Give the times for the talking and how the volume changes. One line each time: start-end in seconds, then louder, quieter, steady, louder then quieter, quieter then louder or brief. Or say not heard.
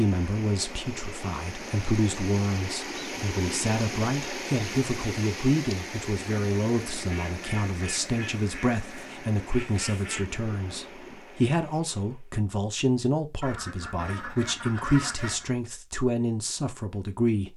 0.0-17.5 steady.